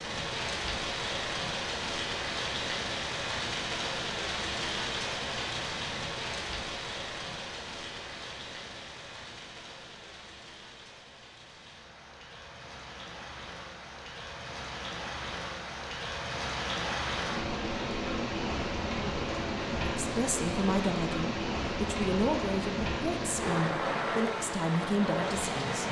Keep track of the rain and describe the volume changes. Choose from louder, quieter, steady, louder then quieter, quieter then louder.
quieter then louder.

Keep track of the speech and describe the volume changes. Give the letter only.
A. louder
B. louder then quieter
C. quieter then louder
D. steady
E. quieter
D.